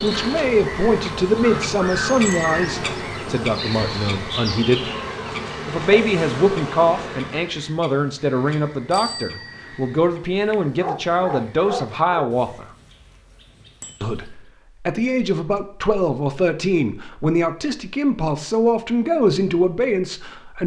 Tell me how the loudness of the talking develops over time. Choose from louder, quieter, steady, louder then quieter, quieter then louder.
steady.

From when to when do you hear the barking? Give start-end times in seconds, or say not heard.
10.3-12.3.